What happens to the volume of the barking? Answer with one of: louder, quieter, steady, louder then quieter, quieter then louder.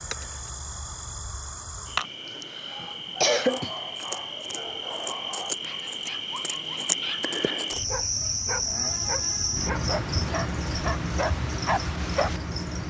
louder.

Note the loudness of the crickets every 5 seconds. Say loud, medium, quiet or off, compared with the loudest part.
medium, loud, loud.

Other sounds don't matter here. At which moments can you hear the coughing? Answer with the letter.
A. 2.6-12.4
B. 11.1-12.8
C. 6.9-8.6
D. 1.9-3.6
D.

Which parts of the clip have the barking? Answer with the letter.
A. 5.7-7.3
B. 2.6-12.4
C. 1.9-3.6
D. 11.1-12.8
B.